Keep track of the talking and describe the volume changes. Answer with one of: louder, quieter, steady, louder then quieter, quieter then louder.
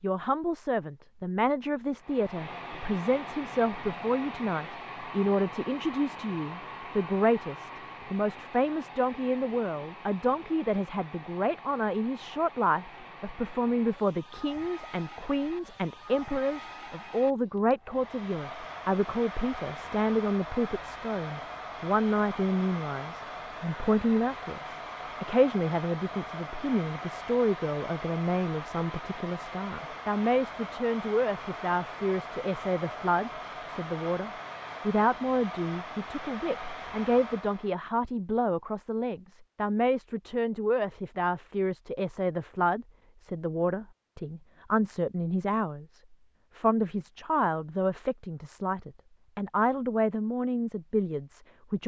steady.